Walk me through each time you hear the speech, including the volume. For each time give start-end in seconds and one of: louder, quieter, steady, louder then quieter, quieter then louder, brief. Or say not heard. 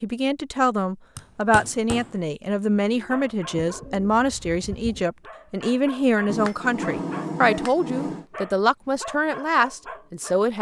0.0-10.5 steady.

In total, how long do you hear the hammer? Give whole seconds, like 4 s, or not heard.
3 s.